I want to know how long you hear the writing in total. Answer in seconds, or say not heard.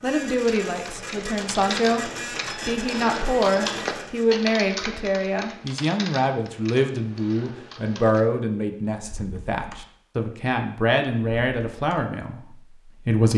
not heard.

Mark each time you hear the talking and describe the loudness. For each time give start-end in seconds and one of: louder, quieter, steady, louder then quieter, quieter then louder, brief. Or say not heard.
0.0-13.3 steady.